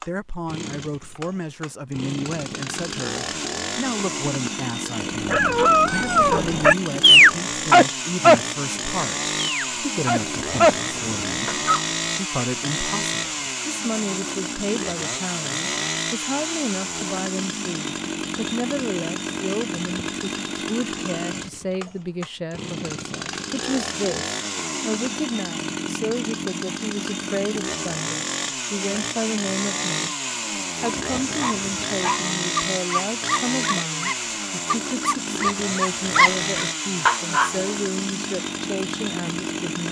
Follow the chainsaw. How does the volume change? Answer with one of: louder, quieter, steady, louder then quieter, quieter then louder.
steady.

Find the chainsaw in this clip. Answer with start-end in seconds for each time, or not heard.
0.0-39.8.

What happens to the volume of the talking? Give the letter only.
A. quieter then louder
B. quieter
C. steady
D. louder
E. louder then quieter
C.